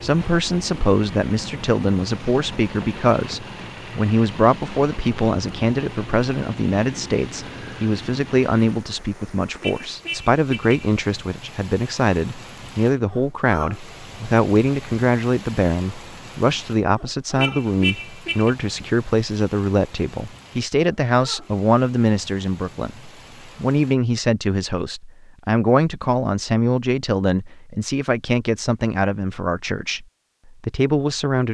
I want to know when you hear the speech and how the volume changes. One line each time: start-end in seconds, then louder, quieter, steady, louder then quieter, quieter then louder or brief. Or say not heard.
0.0-31.4 steady.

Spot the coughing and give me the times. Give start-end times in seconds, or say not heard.
not heard.